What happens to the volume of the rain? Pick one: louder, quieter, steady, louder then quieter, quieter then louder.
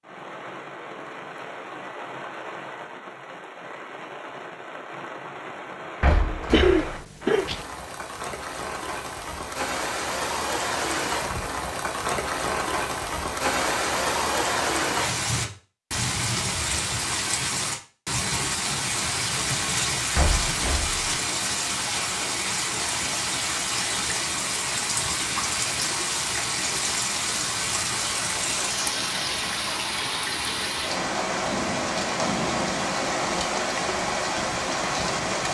louder.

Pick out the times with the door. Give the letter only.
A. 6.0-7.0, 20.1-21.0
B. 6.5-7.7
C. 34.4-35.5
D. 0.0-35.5
A.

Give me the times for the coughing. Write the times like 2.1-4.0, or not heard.
6.5-7.7.